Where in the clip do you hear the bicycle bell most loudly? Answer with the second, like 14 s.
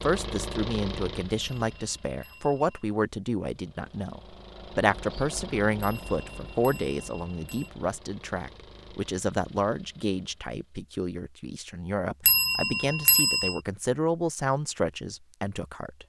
13 s.